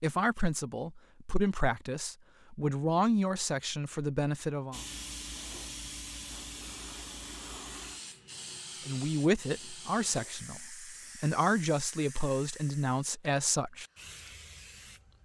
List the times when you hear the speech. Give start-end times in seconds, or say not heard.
0.0-4.8, 8.8-13.8.